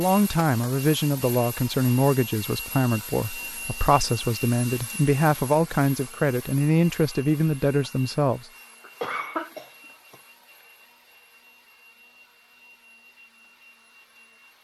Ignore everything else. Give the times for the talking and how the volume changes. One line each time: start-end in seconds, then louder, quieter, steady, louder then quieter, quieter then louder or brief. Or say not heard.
0.0-8.4 steady.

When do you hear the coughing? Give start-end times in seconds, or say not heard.
8.8-10.2.